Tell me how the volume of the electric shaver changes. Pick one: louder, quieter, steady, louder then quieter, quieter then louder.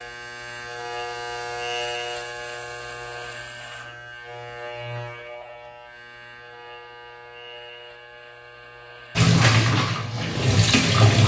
quieter.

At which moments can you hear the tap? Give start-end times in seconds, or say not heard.
9.2-11.2.